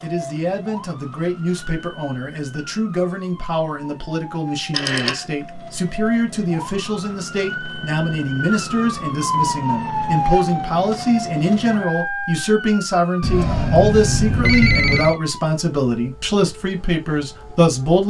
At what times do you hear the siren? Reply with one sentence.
The siren can be heard from 0.0 to 18.0 s.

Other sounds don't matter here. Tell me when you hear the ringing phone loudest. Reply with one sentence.
The volume of the ringing phone peaks at 15 seconds.